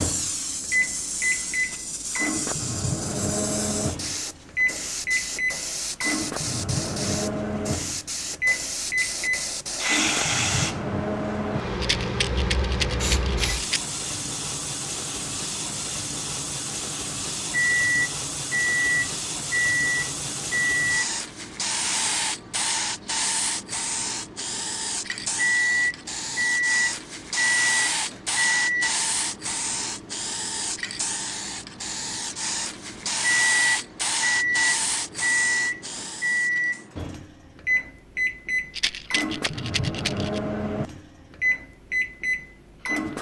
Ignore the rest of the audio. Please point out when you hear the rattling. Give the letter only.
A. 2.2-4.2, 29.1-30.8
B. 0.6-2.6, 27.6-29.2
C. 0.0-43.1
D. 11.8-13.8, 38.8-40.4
D.